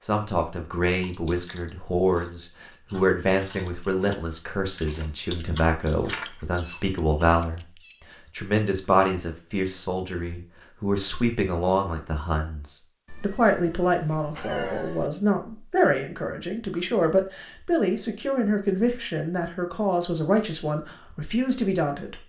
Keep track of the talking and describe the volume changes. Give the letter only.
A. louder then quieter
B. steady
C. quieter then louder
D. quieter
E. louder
B.